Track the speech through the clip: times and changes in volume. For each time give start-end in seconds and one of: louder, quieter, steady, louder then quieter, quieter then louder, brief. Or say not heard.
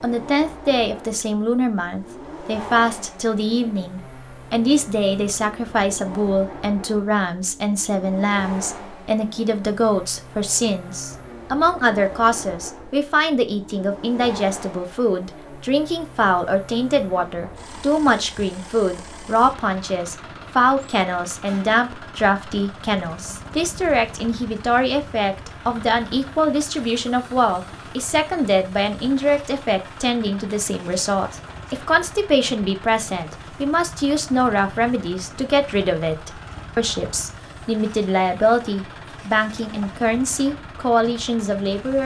0.0-42.0 steady.